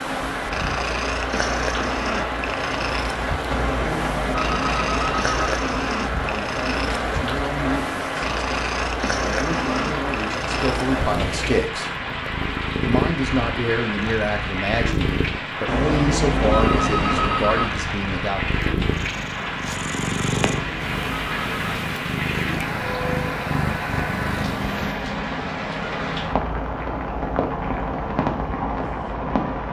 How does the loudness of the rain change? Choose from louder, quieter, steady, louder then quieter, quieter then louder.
steady.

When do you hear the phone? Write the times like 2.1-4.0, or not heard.
3.5-5.5, 15.7-17.7, 20.5-21.9.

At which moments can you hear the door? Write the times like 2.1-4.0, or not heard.
not heard.